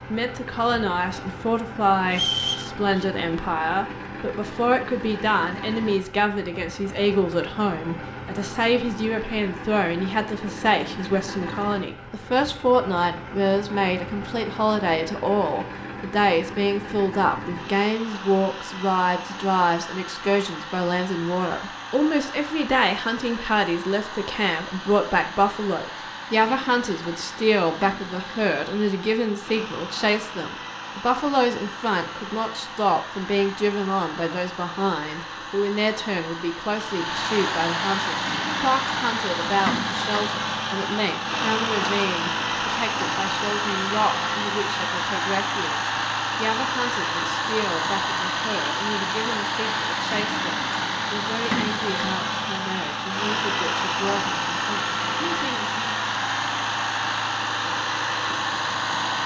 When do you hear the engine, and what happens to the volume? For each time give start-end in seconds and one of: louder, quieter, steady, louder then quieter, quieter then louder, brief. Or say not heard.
0.0-59.2 louder.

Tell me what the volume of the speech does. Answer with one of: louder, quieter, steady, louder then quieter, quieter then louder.
quieter.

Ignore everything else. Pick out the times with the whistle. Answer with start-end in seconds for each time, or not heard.
2.1-3.0.